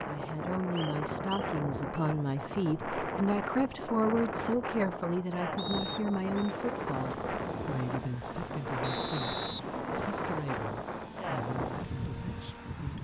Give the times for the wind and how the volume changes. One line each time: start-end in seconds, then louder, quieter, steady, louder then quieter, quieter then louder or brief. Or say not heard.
0.0-12.9 steady.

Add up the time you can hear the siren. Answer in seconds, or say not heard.
not heard.